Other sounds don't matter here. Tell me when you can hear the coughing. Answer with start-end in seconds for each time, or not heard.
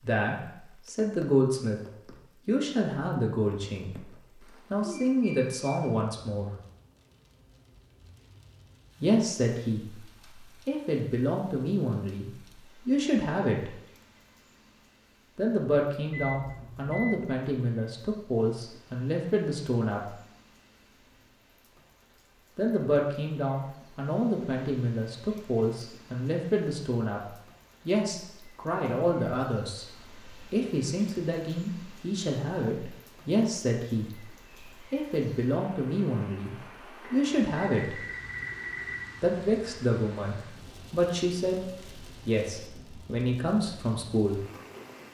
not heard.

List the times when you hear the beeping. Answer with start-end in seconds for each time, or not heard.
5.0-5.5, 16.1-17.2, 37.0-39.0.